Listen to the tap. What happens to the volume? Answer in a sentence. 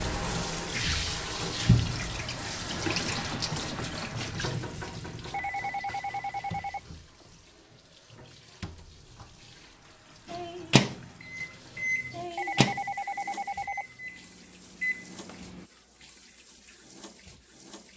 The volume of the tap goes down.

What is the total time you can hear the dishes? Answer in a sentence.
The dishes can't be heard in this clip.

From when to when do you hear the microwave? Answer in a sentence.
You can hear the microwave from 10.2 to 15.7 s.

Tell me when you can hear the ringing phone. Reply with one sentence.
You can hear the ringing phone from 5.3 to 7.2 s and from 12.3 to 13.8 s.